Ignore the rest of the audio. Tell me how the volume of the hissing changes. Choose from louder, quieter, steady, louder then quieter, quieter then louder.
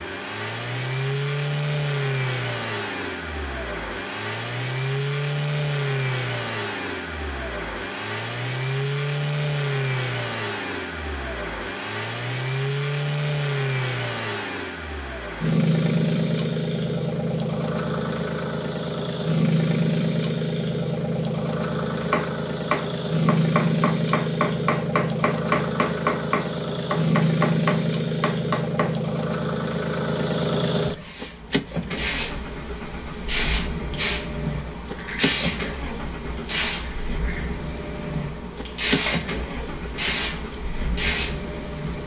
steady.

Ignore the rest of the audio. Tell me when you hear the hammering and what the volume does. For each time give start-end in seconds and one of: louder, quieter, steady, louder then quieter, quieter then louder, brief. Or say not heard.
22.0-28.9 steady.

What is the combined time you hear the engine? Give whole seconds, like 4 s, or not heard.
42 s.